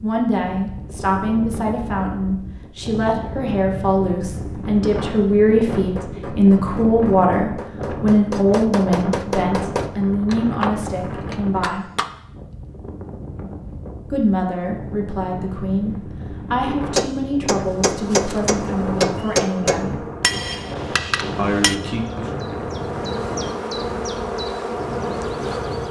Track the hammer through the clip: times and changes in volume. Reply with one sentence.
The hammer can be heard from 5.8 to 12.1 s, getting louder; and from 16.9 to 21.8 s, getting louder then quieter.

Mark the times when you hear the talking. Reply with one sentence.
You can hear the talking from 0.0 to 11.8 s, from 14.1 to 20.0 s and from 21.4 to 22.3 s.